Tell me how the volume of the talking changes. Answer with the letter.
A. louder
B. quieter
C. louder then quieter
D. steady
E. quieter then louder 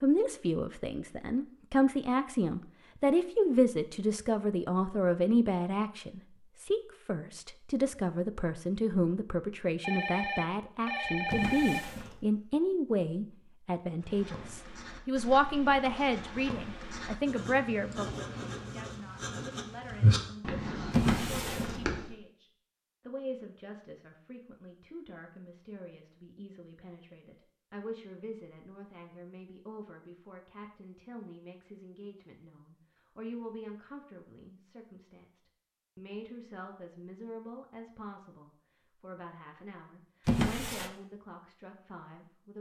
B.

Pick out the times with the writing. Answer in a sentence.
The writing can be heard from 14.0 to 22.1 s.